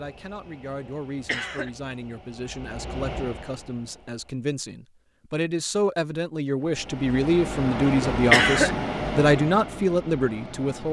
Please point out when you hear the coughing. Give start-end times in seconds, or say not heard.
1.2-1.7, 8.3-8.8.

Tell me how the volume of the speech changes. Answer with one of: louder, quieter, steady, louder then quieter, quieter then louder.
louder.